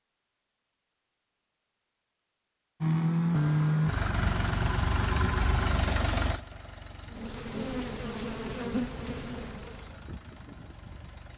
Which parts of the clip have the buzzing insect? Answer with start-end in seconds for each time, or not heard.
7.1-10.0.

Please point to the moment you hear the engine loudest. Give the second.
3 s.